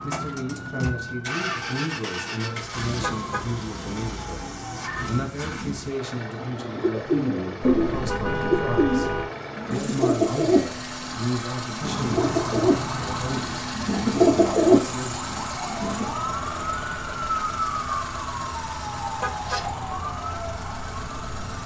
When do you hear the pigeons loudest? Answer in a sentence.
The volume of the pigeons peaks at 15 seconds.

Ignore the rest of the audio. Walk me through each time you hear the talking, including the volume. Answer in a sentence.
You can hear the talking from 0.0 to 15.2 s, at a steady volume.